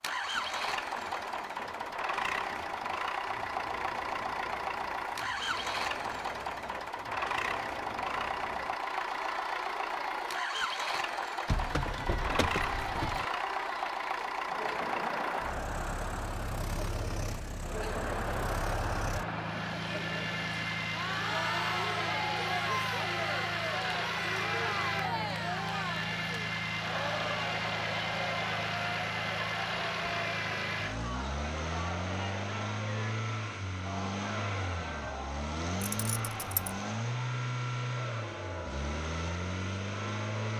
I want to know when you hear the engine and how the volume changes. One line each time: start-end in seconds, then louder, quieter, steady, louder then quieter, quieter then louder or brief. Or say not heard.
0.0-40.5 steady.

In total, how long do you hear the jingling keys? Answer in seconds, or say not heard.
3 s.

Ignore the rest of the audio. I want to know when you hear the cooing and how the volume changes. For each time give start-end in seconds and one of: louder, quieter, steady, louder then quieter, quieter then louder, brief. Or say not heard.
not heard.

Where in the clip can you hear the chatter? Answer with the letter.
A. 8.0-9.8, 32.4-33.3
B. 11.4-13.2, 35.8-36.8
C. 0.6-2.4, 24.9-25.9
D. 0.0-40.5
D.